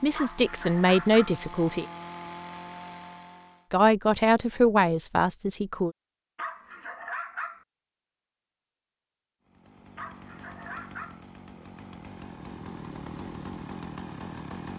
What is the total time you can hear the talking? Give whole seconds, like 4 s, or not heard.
4 s.